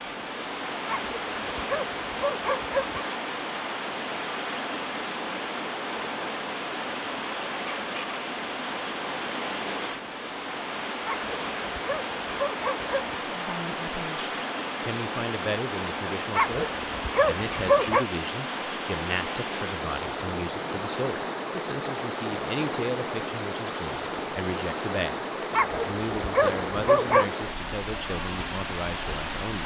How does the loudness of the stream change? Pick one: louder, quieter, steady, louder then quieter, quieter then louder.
steady.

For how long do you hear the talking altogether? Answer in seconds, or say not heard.
16 s.